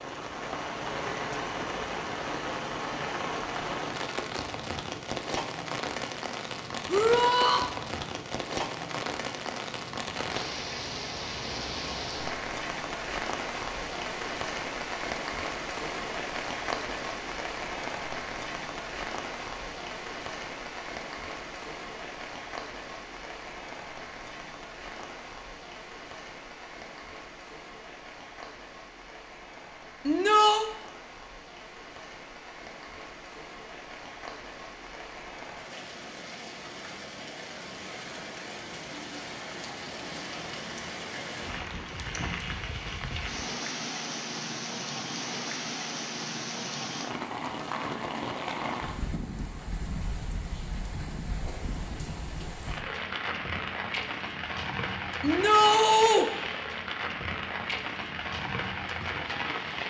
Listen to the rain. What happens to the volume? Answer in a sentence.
The loudness of the rain goes down, then up.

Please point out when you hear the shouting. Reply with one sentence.
You can hear the shouting from 6.8 to 7.6 s, from 30.1 to 30.7 s and from 55.2 to 56.3 s.